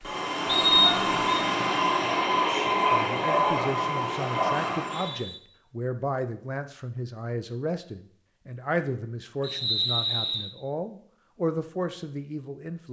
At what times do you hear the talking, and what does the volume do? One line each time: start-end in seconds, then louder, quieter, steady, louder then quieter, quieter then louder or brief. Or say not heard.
2.9-12.8 steady.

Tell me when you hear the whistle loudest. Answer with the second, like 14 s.
1 s.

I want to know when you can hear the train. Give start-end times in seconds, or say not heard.
0.0-5.2.